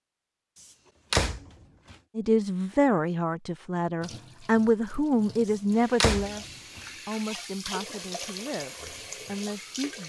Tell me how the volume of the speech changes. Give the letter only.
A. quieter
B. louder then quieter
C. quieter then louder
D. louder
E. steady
A.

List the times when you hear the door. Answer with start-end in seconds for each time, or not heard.
1.1-1.9, 6.0-6.8.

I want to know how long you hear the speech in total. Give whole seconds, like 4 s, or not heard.
8 s.